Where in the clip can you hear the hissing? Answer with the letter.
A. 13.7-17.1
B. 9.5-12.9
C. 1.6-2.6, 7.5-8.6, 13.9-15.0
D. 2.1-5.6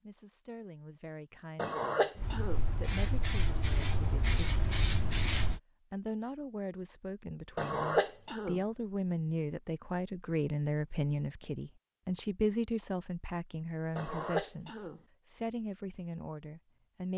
D.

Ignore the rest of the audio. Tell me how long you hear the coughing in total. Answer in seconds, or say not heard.
3 s.